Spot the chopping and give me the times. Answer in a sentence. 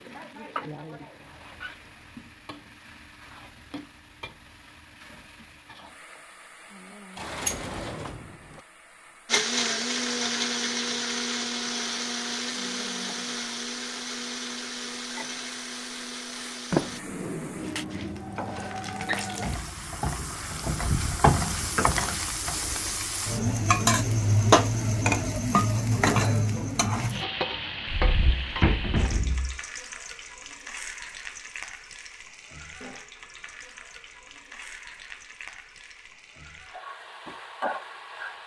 The chopping can't be heard in this clip.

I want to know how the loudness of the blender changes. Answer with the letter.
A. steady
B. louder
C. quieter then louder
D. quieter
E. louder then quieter
D.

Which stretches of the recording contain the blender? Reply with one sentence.
You can hear the blender from 9.2 to 17.0 s.